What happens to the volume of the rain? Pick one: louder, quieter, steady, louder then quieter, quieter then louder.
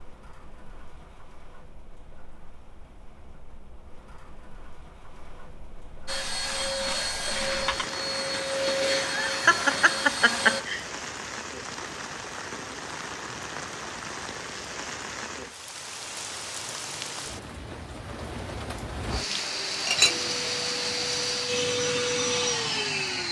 louder.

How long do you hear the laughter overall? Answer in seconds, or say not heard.
2 s.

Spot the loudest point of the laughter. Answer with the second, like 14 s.
10 s.